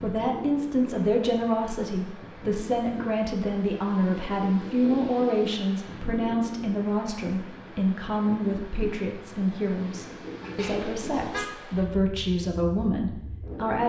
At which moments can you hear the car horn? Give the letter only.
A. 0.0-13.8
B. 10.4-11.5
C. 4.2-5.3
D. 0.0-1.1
B.